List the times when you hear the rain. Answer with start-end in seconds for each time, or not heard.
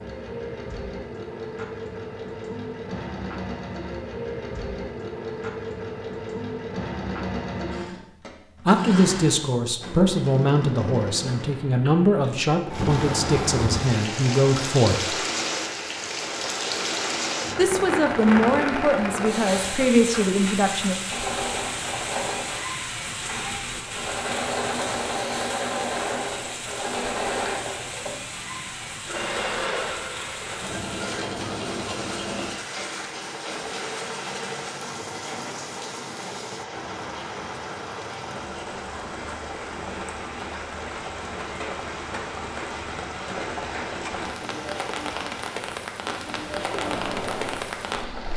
12.7-48.3.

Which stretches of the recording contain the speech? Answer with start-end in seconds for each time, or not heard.
8.7-15.2, 17.6-20.9.